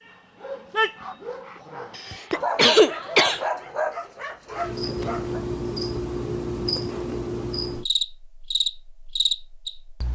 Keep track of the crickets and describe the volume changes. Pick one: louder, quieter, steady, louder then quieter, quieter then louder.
steady.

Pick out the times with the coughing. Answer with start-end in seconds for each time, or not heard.
1.9-3.4.